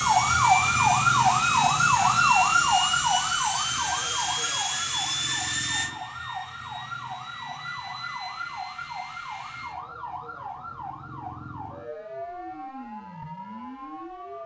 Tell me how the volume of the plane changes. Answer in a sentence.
The loudness of the plane goes down.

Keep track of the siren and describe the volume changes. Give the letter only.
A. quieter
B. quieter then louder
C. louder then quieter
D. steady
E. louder
A.